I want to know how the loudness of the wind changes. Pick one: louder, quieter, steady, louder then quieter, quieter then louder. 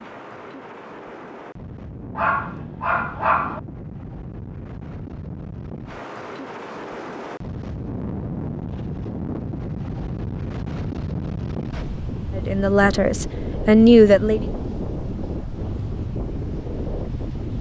louder.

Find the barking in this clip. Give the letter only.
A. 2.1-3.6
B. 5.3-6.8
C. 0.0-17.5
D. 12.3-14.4
A.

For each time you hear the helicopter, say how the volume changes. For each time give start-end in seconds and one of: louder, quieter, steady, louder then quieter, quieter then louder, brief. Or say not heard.
not heard.